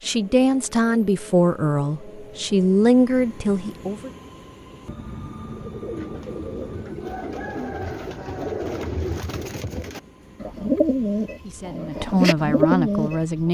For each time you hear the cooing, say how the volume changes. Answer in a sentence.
The cooing can be heard from 5.4 to 13.2 s, getting louder.